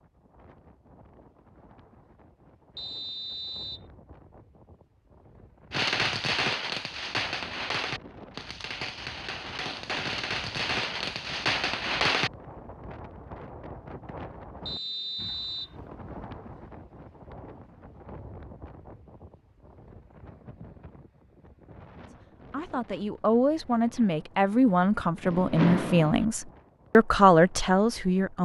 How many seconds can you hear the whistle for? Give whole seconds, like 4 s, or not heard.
2 s.